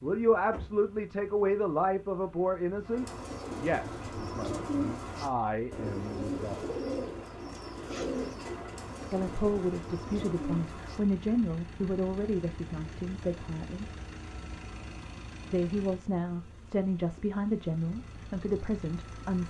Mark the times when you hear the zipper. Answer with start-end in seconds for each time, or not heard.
7.7-8.3.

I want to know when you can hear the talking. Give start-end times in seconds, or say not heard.
0.0-6.7, 9.1-13.9, 15.5-19.4.